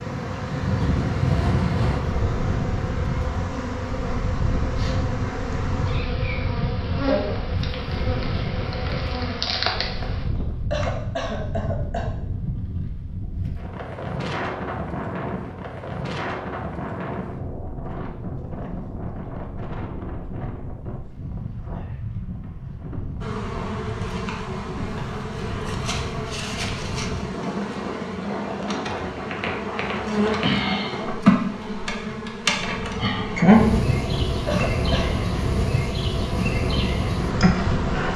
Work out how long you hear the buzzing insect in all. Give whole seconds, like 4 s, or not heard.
25 s.